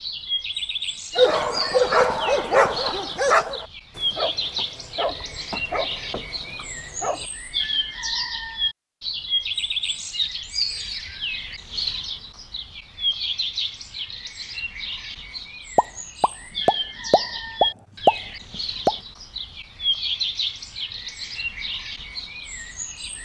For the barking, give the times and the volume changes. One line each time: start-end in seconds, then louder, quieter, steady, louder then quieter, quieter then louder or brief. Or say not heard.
1.1-7.2 quieter.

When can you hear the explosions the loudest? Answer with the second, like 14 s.
18 s.